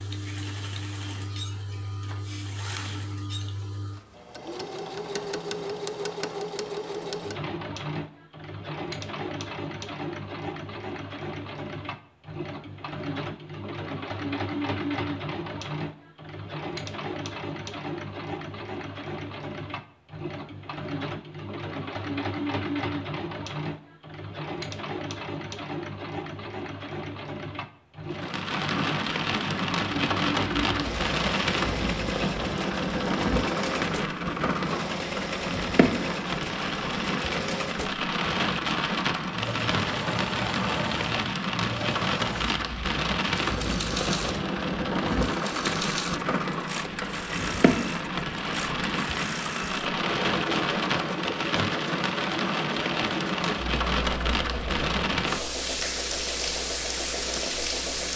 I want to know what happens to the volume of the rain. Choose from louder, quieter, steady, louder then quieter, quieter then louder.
steady.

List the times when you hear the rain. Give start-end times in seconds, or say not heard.
28.1-58.1.